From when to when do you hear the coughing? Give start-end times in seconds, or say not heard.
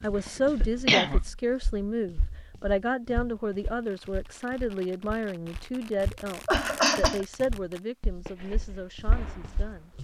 0.1-1.2, 6.5-7.2.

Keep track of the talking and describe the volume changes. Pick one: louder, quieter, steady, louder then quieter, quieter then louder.
quieter.